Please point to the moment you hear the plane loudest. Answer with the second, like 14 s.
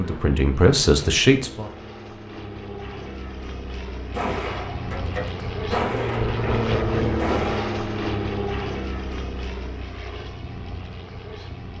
7 s.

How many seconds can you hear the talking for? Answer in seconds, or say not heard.
2 s.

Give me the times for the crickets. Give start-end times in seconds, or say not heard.
not heard.